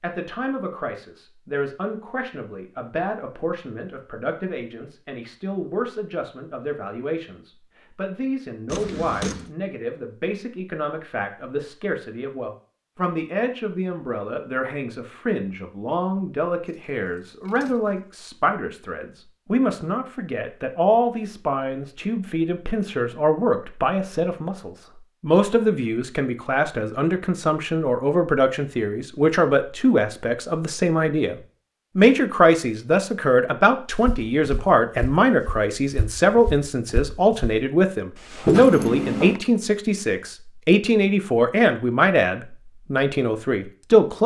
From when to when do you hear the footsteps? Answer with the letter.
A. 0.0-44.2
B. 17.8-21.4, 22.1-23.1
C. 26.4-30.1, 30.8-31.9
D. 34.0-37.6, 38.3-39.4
D.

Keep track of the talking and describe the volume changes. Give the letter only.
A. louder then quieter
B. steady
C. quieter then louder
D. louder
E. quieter
D.